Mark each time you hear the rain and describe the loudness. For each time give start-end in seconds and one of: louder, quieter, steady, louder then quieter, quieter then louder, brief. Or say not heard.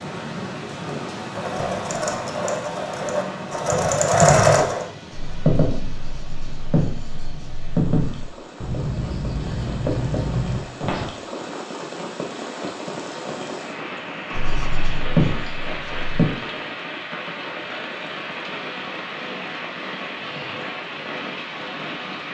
0.0-22.2 quieter then louder.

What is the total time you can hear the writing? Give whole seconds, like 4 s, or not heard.
8 s.